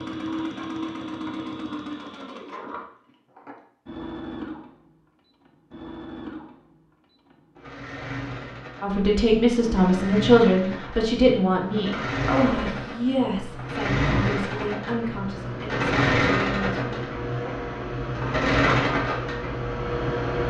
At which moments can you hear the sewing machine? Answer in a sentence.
You can hear the sewing machine from 0.0 to 20.4 s.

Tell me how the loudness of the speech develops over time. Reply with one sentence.
The volume of the speech goes down.